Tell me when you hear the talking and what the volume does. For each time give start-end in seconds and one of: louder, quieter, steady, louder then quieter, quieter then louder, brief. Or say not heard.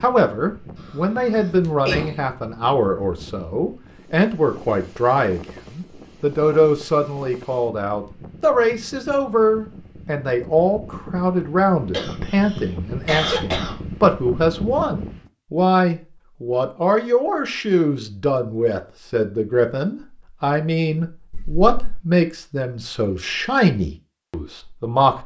0.0-25.2 steady.